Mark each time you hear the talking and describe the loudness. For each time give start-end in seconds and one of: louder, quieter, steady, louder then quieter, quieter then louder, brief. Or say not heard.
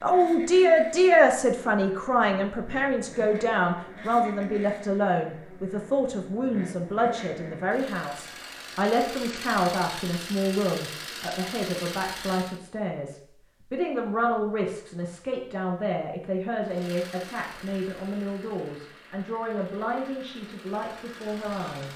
0.0-21.9 quieter.